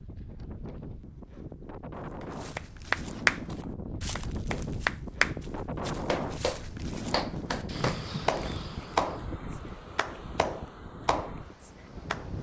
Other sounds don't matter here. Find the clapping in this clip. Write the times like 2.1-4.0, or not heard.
2.2-12.2.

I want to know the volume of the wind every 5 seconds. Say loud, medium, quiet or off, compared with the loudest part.
loud, loud, medium.